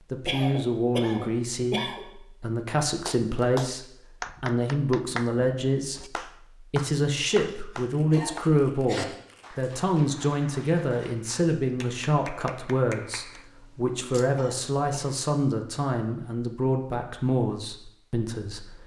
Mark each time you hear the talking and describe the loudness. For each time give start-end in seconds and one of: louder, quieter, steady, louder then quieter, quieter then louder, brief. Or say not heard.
0.1-18.8 steady.